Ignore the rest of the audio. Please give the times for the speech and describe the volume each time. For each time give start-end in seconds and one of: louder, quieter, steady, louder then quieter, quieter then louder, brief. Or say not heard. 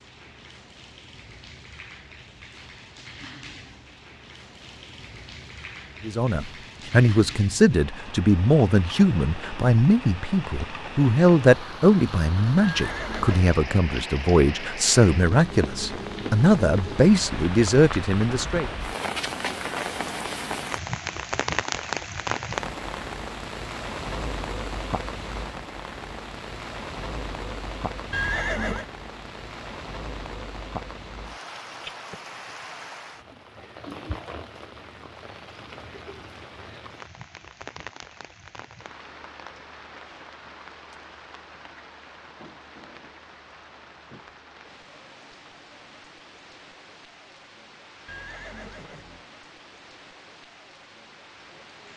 6.0-18.7 steady.